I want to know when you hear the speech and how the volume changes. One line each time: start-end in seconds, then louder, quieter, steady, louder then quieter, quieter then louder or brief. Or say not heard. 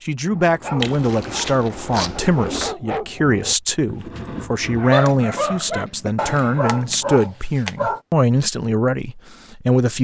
0.0-9.9 steady.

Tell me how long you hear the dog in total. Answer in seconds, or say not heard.
8 s.